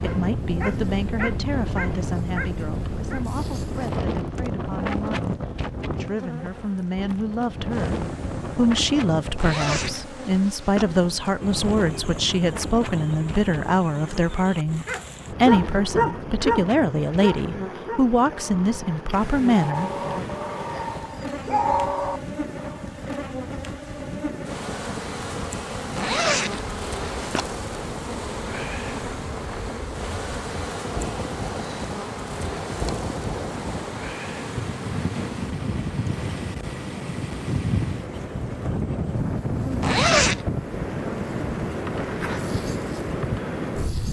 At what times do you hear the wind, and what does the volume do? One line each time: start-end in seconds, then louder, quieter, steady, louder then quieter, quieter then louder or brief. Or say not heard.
0.0-44.0 quieter then louder.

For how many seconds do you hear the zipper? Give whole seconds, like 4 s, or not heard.
4 s.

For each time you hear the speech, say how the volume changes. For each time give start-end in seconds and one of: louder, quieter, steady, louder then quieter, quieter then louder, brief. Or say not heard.
0.0-20.2 louder.